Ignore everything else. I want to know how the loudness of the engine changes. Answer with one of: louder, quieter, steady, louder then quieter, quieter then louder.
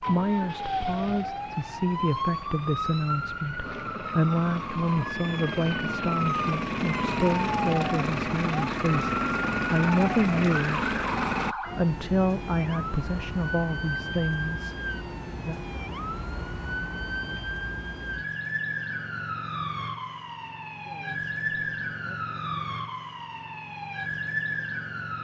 louder.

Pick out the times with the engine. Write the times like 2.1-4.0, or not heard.
0.0-11.6.